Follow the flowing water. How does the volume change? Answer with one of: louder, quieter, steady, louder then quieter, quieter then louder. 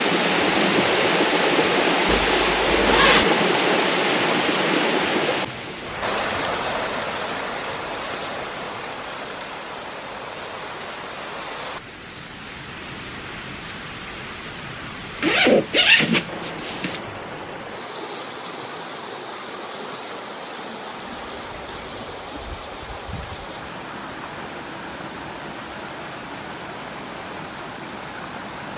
quieter.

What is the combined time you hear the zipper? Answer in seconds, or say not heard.
3 s.